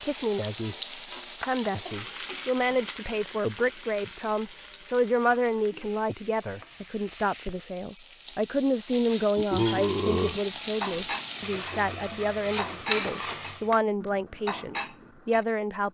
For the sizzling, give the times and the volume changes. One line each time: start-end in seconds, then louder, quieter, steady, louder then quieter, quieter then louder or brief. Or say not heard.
0.0-13.8 quieter then louder.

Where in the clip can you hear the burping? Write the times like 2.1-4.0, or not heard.
9.3-10.4.